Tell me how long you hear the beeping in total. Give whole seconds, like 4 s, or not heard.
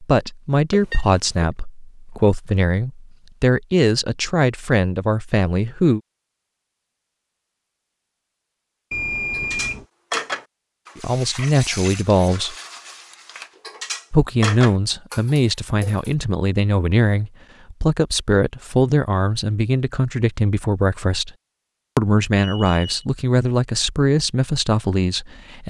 2 s.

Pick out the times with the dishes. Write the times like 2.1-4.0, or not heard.
9.3-16.1.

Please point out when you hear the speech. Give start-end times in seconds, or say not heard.
0.0-6.0, 10.9-12.6, 14.1-21.3, 21.9-25.6.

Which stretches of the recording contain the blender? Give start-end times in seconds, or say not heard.
not heard.